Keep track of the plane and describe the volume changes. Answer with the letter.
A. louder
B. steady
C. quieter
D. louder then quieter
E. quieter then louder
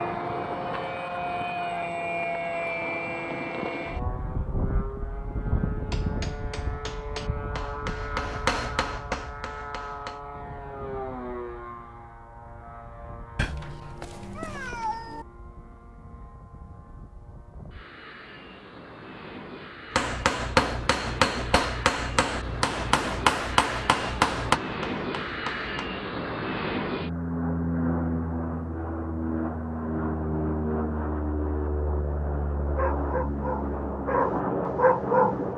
E.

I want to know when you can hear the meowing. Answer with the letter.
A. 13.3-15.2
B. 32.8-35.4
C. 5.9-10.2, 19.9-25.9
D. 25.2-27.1
A.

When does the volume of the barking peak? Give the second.
35 s.